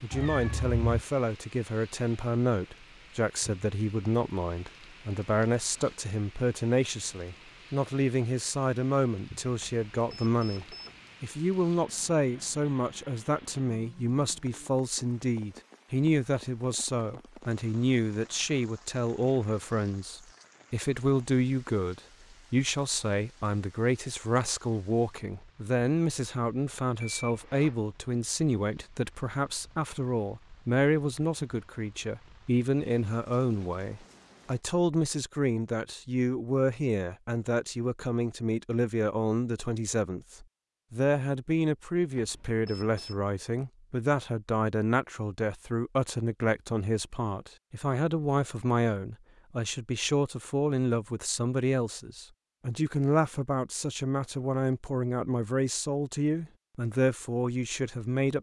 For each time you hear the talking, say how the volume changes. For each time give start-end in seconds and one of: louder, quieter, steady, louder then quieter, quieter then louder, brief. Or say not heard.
0.0-58.3 steady.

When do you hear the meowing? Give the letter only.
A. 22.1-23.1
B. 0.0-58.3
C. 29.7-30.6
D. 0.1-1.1
D.